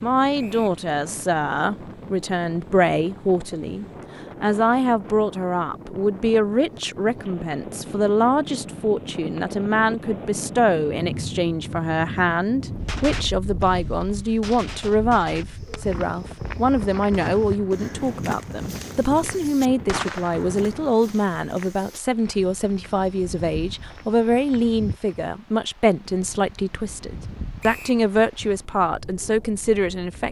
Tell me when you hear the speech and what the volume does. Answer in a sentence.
You can hear the speech from 0.0 to 30.2 s, at a steady volume.